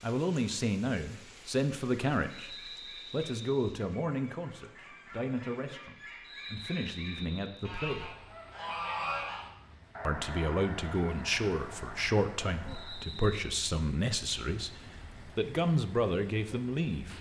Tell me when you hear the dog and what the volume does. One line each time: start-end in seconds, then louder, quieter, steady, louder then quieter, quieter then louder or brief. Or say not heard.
not heard.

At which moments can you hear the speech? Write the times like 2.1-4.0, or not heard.
0.0-8.2, 10.1-17.1.